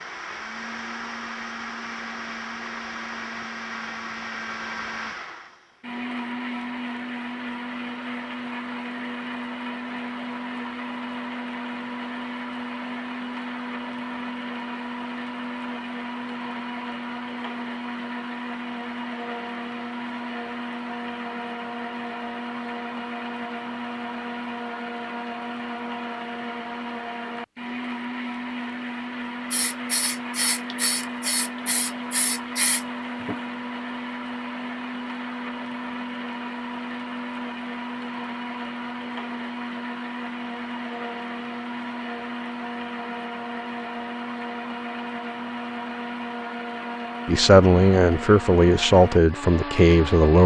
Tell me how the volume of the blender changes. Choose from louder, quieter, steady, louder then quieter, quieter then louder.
steady.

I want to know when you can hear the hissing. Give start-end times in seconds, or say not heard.
29.5-33.4.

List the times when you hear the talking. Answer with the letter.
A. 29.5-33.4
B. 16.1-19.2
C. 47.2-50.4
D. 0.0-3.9
C.